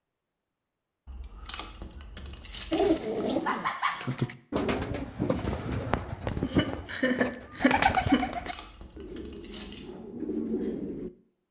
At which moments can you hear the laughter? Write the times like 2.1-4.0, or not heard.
3.5-4.0, 6.4-8.2.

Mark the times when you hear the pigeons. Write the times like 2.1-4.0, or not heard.
2.7-11.1.